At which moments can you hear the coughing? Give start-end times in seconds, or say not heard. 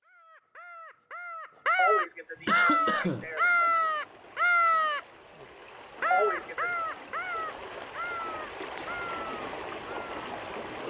1.8-3.7, 6.1-6.7.